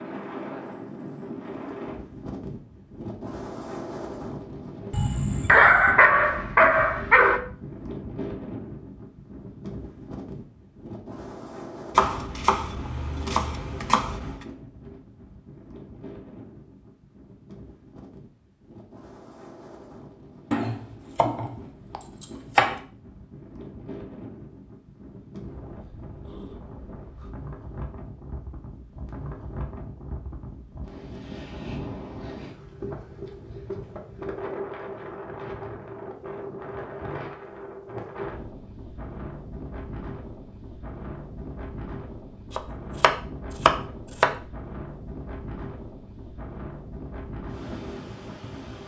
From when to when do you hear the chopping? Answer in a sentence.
The chopping can be heard from 11.9 to 14.4 s, from 20.5 to 22.8 s and from 42.5 to 44.3 s.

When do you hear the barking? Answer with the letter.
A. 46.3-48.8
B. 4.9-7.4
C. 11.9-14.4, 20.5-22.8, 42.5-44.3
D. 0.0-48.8
B.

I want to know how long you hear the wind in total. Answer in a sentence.
You can hear the wind for 49 seconds altogether.